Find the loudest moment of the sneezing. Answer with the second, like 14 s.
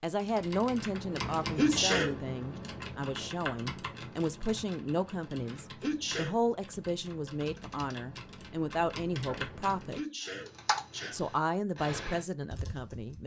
2 s.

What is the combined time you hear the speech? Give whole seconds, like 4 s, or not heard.
12 s.